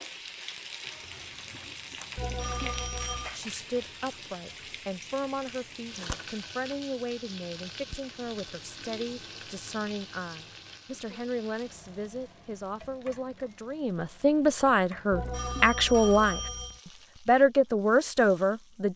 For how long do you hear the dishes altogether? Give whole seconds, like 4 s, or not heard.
not heard.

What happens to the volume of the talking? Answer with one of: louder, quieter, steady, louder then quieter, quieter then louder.
louder.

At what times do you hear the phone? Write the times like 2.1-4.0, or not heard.
2.1-3.4, 15.1-16.8.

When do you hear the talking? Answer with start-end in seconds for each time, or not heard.
3.3-18.9.